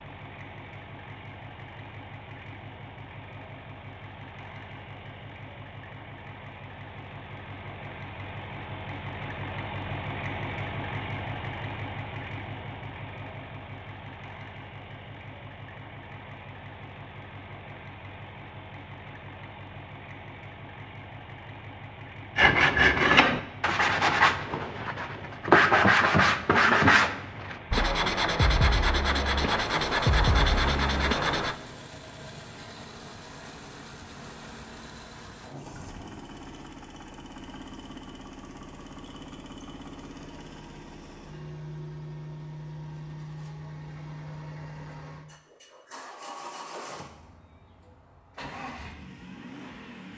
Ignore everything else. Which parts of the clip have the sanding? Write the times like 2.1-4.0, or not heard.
22.4-31.6.